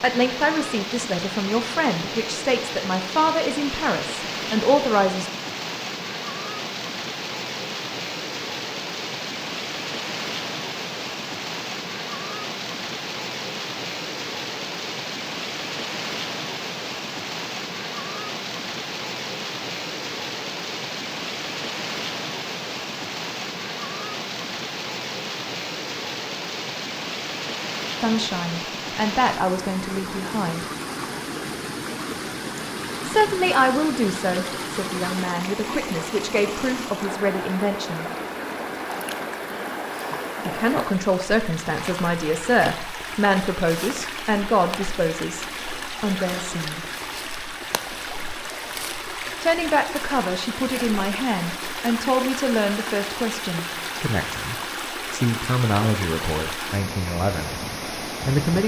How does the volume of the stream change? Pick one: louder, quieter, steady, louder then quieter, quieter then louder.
steady.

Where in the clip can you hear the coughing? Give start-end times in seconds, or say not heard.
not heard.